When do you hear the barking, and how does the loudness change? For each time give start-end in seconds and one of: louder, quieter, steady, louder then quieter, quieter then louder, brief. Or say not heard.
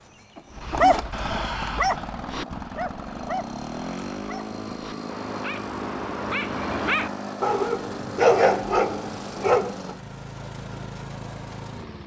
0.6-9.9 quieter then louder.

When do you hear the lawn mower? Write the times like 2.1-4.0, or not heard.
0.0-12.0.